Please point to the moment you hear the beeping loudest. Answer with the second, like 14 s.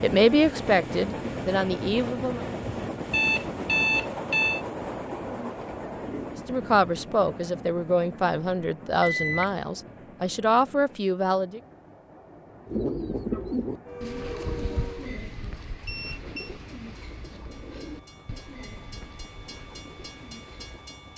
4 s.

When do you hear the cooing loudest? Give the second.
13 s.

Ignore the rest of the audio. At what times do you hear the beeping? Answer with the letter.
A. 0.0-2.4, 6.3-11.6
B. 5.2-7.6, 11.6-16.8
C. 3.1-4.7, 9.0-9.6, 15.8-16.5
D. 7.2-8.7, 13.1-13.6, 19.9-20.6
C.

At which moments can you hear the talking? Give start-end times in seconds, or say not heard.
0.0-2.4, 6.3-11.6.